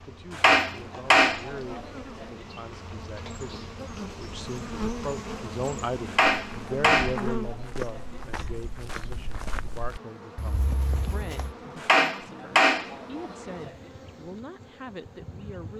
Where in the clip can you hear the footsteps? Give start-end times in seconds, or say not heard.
6.5-11.6.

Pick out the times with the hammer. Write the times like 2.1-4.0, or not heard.
0.3-2.2, 6.0-8.0, 11.8-13.7.